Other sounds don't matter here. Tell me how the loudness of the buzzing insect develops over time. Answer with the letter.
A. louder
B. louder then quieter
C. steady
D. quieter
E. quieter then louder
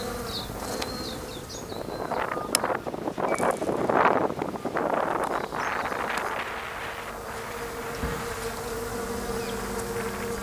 E.